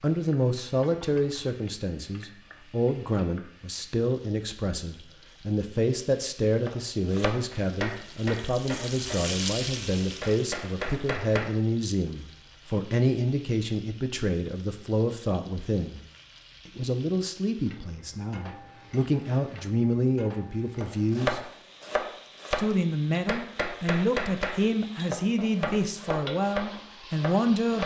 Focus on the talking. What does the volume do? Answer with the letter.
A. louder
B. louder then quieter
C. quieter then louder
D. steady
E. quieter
D.